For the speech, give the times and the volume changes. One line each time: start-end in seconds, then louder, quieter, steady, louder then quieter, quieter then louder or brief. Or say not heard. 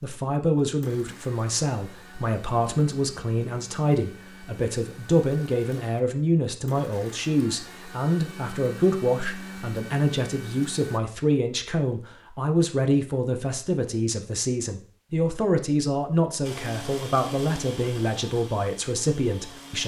0.0-19.8 steady.